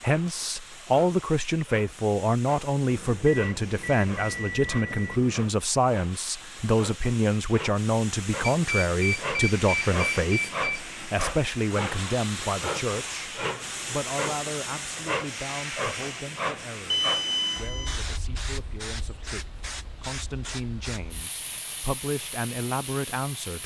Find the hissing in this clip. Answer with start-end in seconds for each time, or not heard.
0.0-23.6.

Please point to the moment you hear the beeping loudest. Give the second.
17 s.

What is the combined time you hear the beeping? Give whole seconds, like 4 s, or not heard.
6 s.